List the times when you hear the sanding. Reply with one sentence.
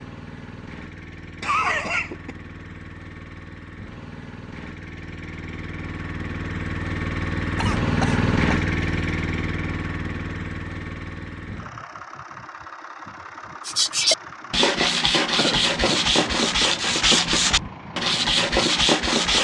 You can hear the sanding from 13.7 to 19.4 s.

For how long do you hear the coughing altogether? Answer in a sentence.
You can hear the coughing for 3 seconds altogether.